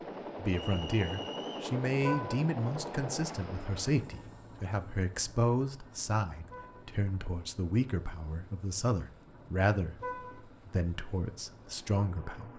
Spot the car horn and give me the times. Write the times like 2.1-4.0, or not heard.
2.0-2.5, 6.5-6.9, 9.9-10.4.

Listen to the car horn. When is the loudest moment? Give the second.
2 s.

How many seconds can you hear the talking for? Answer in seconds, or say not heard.
12 s.